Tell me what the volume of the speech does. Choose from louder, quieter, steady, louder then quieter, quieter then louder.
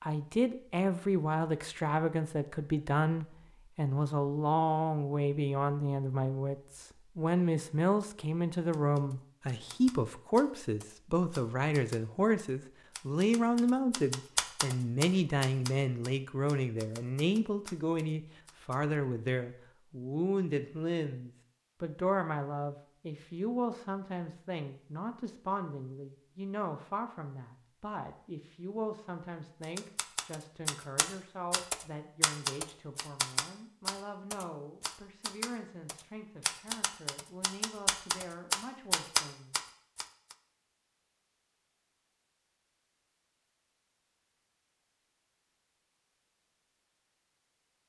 quieter.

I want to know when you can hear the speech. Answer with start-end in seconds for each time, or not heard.
0.0-39.5.